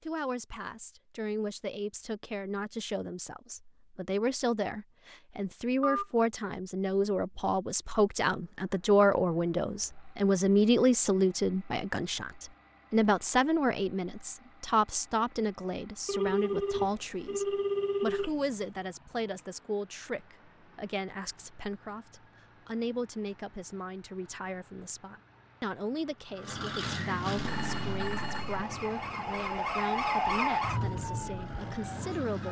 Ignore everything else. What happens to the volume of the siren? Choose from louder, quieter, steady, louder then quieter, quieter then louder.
louder then quieter.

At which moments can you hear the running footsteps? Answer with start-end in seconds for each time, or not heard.
not heard.